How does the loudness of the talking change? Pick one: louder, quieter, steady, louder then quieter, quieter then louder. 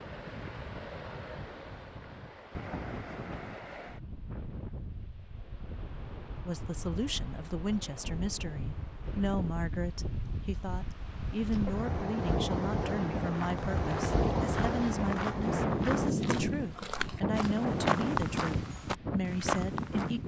steady.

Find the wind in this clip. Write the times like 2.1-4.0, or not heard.
0.0-20.2.